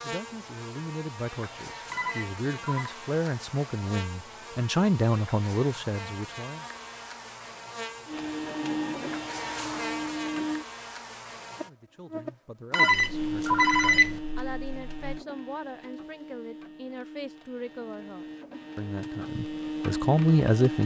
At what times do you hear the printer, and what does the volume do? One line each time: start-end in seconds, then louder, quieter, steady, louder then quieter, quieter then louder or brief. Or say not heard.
8.1-10.7 brief
13.1-20.8 quieter then louder.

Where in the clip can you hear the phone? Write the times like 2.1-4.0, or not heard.
1.9-3.0, 12.7-14.2.